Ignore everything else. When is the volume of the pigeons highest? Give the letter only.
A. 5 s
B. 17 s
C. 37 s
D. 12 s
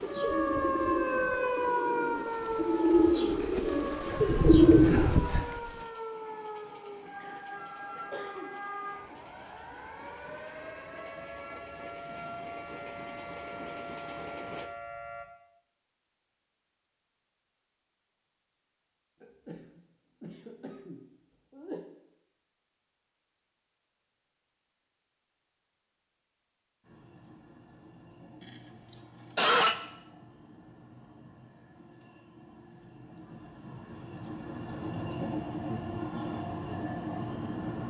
A.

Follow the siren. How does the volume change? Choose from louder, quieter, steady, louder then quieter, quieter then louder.
quieter.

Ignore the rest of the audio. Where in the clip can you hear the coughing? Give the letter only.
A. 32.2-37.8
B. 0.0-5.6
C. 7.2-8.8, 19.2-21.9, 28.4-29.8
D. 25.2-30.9
C.